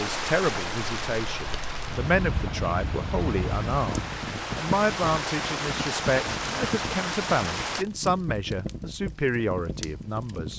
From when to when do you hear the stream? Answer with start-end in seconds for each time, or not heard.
0.0-7.8.